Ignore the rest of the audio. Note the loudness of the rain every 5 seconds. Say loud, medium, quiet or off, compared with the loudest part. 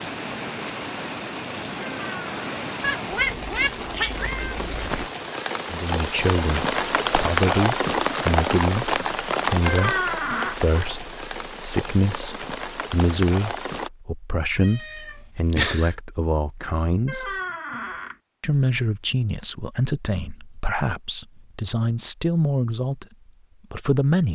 medium, loud, medium, off, off.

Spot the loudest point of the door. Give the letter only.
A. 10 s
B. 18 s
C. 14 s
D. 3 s
A.